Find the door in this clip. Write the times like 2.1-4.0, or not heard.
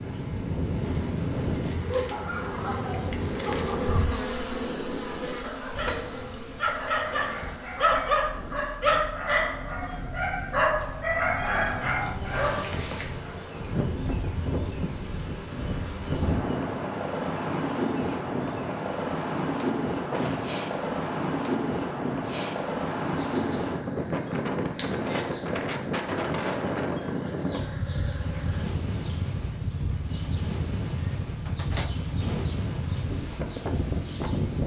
5.8-6.5, 20.1-20.6, 31.4-32.5.